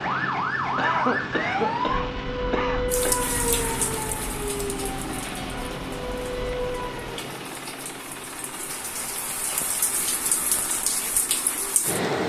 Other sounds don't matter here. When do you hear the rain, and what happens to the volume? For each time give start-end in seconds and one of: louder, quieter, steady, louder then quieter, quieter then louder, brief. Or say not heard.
2.9-12.2 quieter then louder.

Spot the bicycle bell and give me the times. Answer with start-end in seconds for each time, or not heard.
not heard.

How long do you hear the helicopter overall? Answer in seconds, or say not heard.
12 s.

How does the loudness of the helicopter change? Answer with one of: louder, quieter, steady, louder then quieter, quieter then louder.
quieter.